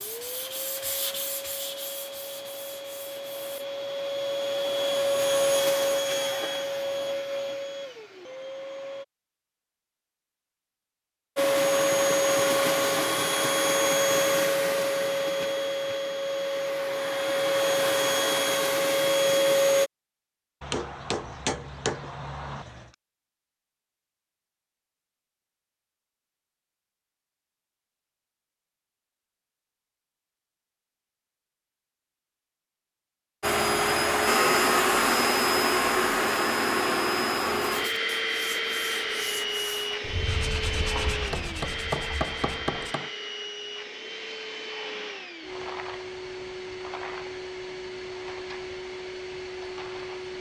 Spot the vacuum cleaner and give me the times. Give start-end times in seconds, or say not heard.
0.0-9.1, 11.3-19.9, 33.4-50.3.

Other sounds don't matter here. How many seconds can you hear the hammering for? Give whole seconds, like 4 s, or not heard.
4 s.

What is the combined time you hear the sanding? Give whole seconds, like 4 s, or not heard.
9 s.